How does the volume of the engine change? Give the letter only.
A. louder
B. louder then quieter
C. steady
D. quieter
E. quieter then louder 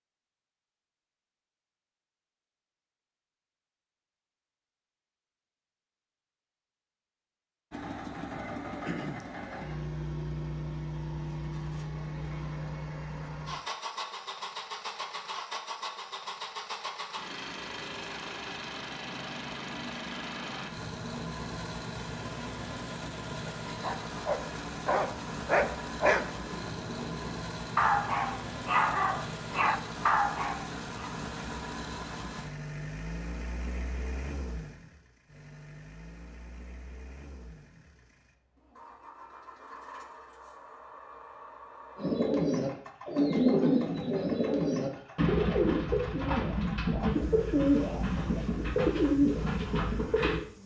D.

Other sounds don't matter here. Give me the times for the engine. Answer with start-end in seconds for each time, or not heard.
7.7-50.6.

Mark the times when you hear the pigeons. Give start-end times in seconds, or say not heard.
42.0-50.4.